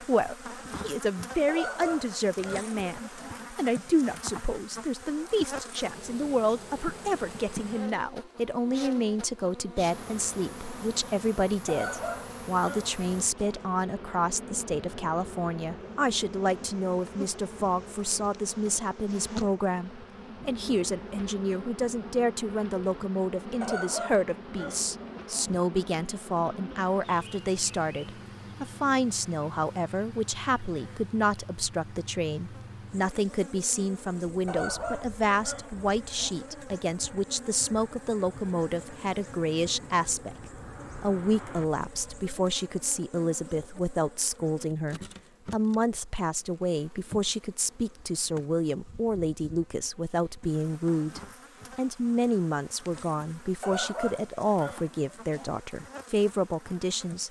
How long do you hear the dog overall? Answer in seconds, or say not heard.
10 s.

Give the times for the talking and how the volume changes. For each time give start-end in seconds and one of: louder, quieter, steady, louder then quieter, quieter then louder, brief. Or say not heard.
0.0-40.4 steady
41.0-57.2 steady.